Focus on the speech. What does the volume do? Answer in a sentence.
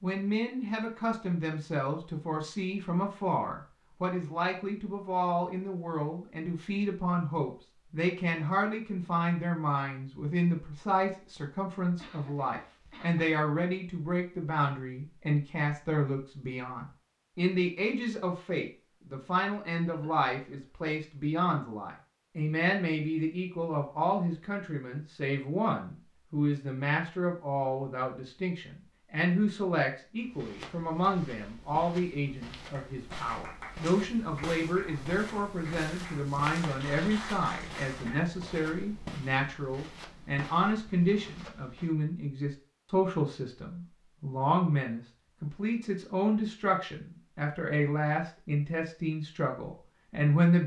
The volume of the speech stays about the same.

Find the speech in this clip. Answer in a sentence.
You can hear the speech from 0.0 to 50.6 s.